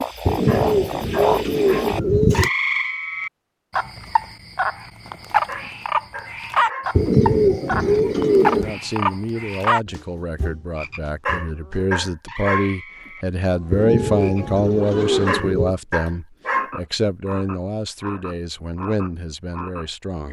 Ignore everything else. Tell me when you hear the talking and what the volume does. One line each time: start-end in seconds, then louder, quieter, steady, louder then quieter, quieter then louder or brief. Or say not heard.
8.4-20.2 louder then quieter.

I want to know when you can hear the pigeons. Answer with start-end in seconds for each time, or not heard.
0.2-2.5, 7.0-8.8, 13.7-15.8.